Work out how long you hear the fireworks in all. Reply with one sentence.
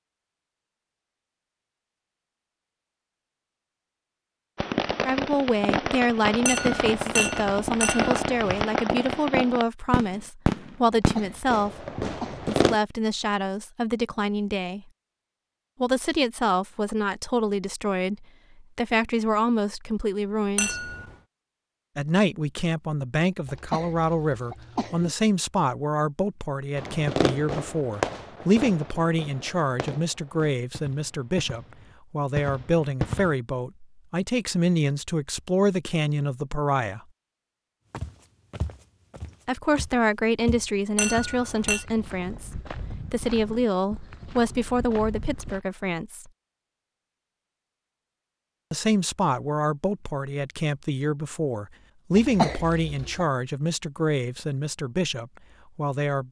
The fireworks can be heard for 15 seconds in total.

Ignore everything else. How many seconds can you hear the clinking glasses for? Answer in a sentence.
You can hear the clinking glasses for 4 seconds altogether.